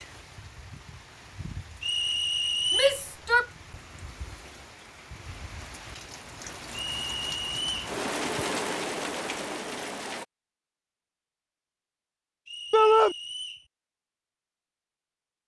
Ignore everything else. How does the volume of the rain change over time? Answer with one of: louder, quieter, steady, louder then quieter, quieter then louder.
louder.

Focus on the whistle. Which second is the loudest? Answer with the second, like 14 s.
3 s.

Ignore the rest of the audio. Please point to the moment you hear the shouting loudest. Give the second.
13 s.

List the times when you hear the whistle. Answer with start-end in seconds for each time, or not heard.
1.8-3.0, 7.0-7.7, 12.4-13.7.